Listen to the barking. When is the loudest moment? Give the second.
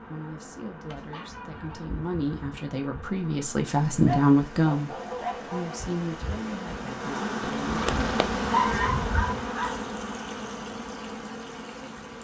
9 s.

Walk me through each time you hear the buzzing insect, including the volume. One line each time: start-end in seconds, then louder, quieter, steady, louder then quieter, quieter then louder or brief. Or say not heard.
0.0-12.1 louder then quieter.